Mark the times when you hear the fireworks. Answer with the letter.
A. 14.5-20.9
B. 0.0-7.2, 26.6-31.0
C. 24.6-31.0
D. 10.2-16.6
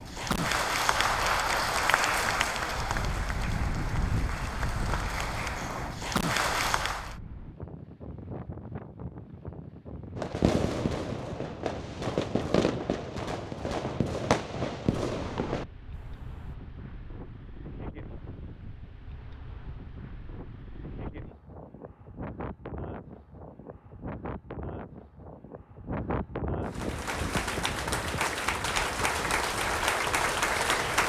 D.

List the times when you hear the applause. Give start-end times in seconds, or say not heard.
0.0-7.2, 26.6-31.0.